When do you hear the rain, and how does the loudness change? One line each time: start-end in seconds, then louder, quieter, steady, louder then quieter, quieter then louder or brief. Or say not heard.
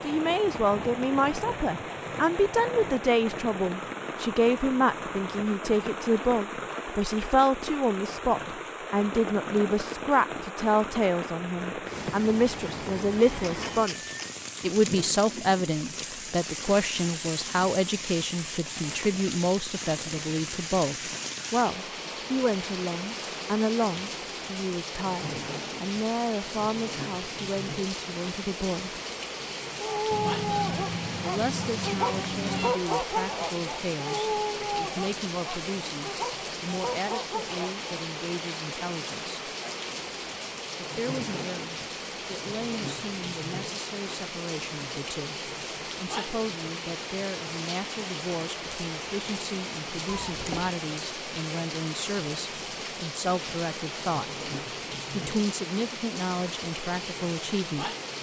0.0-58.1 steady.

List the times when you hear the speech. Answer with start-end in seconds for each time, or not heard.
0.0-29.0, 31.2-39.4, 40.8-54.2, 55.1-57.9.